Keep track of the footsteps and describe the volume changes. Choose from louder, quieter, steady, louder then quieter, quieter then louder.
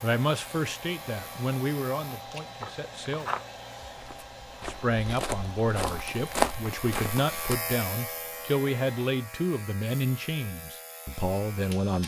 quieter then louder.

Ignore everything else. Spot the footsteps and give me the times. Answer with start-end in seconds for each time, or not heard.
2.1-7.5.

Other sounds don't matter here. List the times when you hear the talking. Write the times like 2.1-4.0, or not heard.
0.0-3.3, 4.7-12.0.